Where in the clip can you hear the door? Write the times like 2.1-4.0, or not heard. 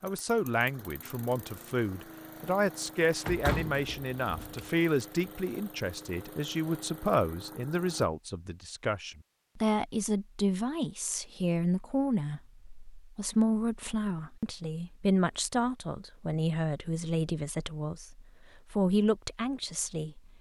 3.2-4.7.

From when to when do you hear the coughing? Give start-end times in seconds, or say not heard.
not heard.